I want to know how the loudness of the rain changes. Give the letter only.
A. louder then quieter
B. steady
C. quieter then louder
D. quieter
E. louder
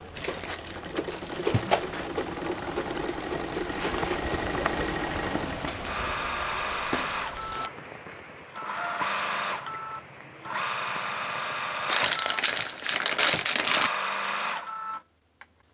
A.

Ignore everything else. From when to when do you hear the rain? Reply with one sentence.
The rain can be heard from 0.0 to 11.9 s.